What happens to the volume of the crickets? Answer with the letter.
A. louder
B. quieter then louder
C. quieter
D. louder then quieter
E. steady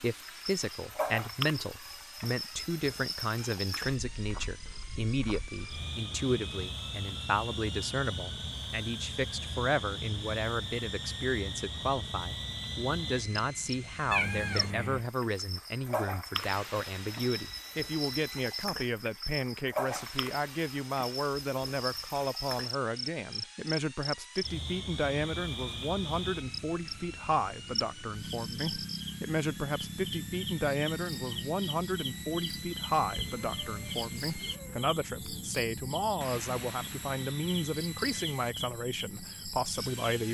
E.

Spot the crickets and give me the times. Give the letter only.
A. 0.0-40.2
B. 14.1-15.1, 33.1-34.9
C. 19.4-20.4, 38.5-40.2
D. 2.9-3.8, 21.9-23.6
A.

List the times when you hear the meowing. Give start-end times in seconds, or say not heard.
14.1-15.1, 33.1-34.9.